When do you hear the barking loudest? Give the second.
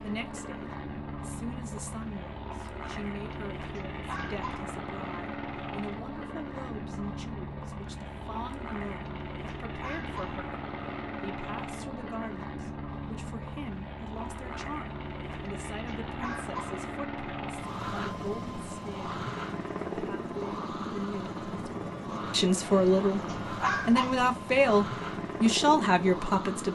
24 s.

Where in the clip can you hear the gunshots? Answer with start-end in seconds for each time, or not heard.
not heard.